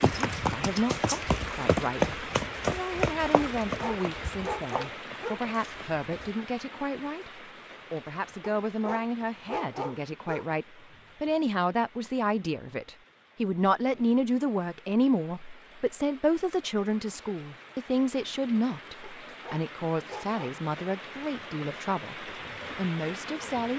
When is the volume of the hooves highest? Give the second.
2 s.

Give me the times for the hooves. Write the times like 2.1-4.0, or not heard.
0.0-6.3.